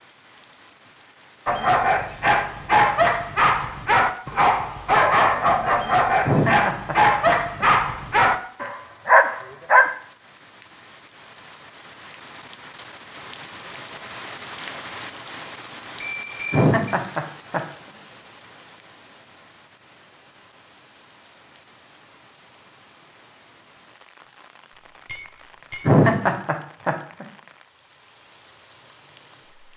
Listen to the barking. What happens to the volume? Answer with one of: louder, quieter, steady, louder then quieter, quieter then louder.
steady.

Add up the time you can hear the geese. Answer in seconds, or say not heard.
not heard.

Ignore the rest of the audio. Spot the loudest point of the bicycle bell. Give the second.
25 s.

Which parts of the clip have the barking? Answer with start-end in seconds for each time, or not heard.
1.4-9.9.